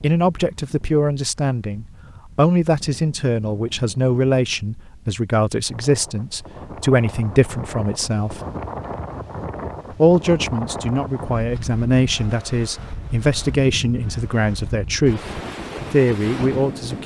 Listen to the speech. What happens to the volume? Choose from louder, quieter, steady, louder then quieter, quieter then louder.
steady.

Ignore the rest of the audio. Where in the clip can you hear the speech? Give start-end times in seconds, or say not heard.
0.0-8.4, 10.0-17.0.